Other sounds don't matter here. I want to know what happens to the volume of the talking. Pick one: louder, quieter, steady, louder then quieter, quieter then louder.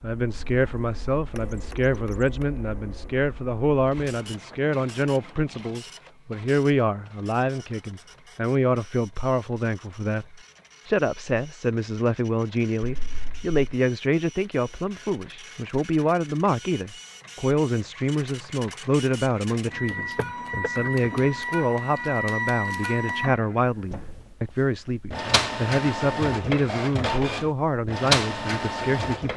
steady.